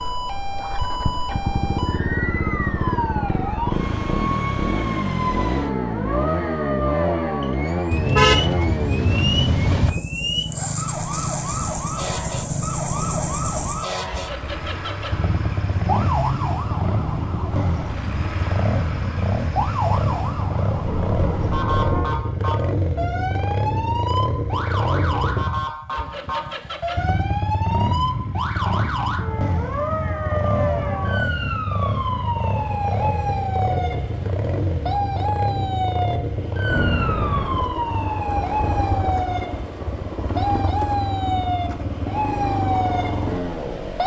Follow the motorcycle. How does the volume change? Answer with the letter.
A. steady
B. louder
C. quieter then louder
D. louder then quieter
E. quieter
A.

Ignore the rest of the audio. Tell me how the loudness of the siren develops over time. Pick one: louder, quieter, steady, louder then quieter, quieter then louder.
steady.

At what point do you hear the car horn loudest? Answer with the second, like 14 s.
8 s.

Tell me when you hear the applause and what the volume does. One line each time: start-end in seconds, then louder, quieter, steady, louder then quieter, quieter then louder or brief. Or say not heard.
not heard.